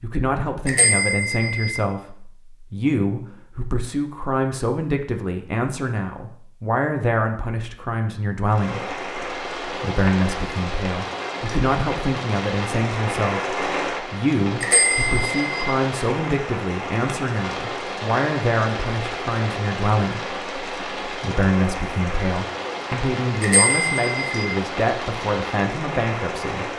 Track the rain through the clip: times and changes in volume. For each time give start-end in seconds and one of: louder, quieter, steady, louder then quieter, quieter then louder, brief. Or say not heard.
8.4-26.7 steady.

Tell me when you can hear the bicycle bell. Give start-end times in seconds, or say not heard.
0.7-1.8, 14.6-15.7, 23.4-24.6.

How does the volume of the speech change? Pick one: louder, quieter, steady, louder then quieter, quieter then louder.
steady.